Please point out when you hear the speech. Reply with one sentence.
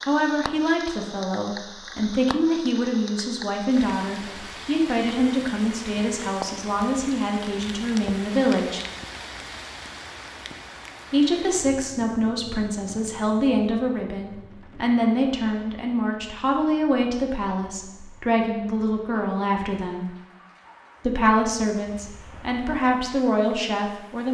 The speech can be heard from 0.1 to 8.8 s, from 11.1 to 20.1 s and from 21.0 to 24.3 s.